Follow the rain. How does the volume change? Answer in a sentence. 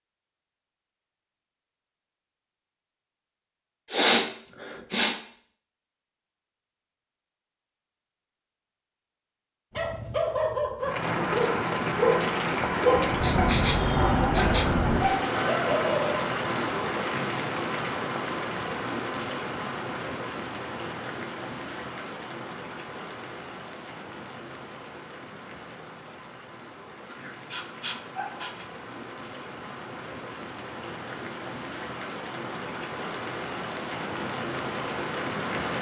The loudness of the rain goes down, then up.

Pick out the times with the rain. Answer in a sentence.
You can hear the rain from 10.8 to 35.7 s.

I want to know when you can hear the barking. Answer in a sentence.
The barking can be heard from 9.8 to 16.2 s.